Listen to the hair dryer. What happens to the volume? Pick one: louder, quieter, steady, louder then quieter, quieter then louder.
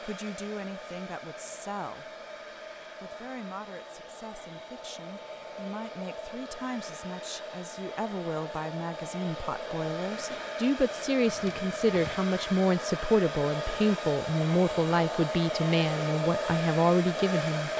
louder.